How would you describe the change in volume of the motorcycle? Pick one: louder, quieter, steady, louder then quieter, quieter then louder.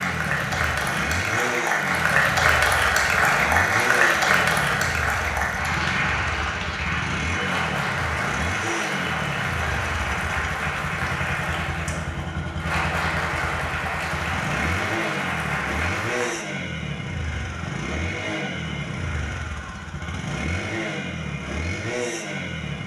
steady.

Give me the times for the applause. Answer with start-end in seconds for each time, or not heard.
0.0-16.4.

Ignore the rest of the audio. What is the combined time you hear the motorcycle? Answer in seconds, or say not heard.
23 s.